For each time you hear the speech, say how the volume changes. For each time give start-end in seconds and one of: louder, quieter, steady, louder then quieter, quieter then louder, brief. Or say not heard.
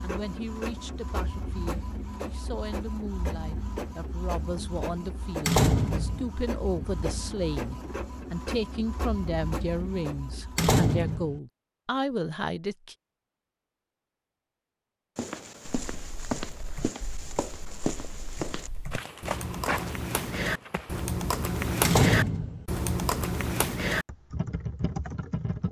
0.0-12.9 louder.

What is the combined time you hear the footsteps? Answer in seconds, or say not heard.
6 s.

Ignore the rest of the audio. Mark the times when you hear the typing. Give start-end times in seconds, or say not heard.
15.7-25.6.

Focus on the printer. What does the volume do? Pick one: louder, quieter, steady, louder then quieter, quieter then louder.
steady.